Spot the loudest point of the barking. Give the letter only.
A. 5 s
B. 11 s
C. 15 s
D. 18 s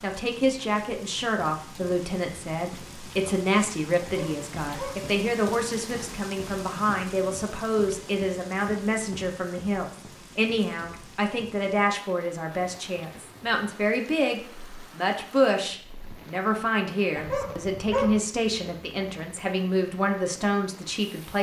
D.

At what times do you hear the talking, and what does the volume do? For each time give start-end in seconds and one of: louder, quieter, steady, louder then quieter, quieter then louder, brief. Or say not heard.
0.0-21.3 steady.